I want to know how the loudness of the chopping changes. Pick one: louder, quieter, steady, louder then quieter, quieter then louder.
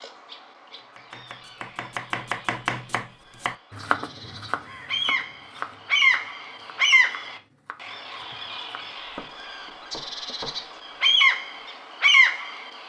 quieter then louder.